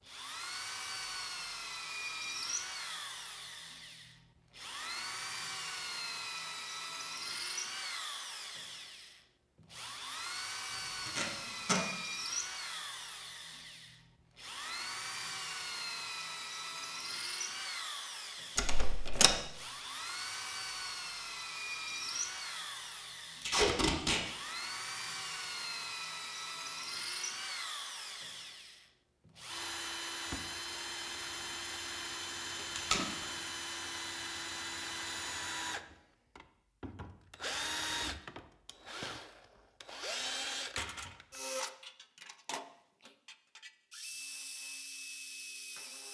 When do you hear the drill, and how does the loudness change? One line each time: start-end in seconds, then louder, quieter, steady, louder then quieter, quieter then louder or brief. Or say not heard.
0.0-46.1 steady.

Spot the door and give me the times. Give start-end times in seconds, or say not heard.
18.6-19.4.